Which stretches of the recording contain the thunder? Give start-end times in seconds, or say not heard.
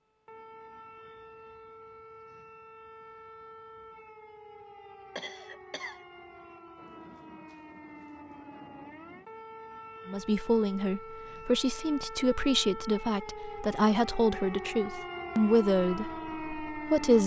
6.8-9.3.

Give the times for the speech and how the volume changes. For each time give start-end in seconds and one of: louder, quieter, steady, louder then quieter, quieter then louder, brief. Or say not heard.
10.1-17.2 steady.